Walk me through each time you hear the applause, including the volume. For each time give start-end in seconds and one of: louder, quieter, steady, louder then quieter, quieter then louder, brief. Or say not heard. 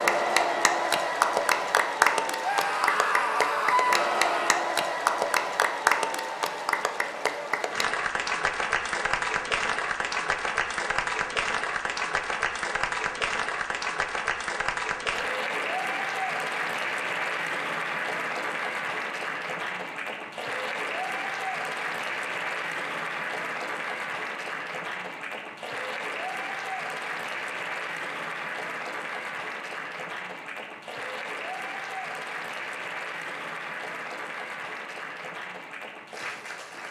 0.0-36.8 quieter.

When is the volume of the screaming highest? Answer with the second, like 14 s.
4 s.